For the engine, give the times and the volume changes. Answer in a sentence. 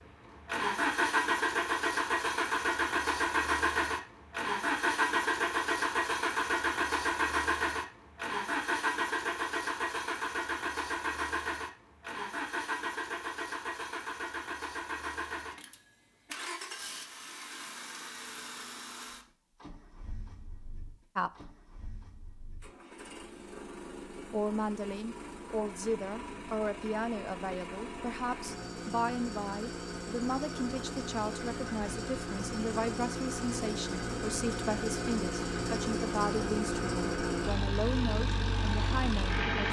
The engine can be heard from 0.0 to 39.6 s, getting quieter then louder.